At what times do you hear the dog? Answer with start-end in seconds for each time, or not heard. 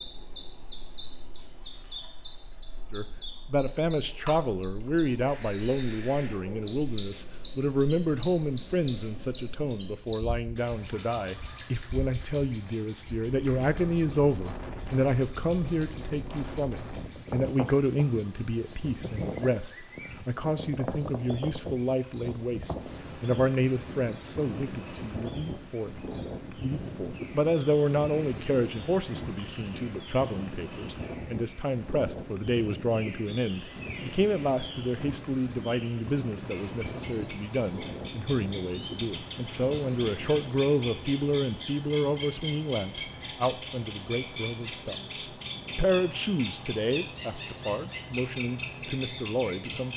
not heard.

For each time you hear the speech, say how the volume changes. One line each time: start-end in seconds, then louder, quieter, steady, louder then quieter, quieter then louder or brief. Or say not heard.
2.9-49.9 steady.